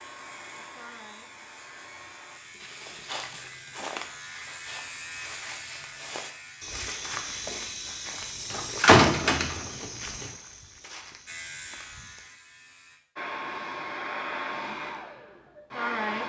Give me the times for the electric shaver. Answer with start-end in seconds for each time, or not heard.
0.0-8.1, 11.2-13.0.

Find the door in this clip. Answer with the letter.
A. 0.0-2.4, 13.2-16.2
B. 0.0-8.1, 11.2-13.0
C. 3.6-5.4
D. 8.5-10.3
D.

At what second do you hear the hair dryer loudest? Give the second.
16 s.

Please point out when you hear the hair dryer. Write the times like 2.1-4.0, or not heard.
0.0-2.4, 13.2-16.2.